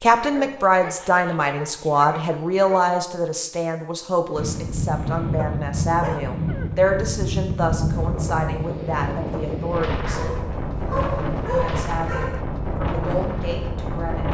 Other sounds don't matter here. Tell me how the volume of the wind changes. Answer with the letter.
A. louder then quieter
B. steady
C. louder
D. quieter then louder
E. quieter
B.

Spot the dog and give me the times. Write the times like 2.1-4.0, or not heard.
0.1-2.9, 5.3-6.9, 10.1-12.4.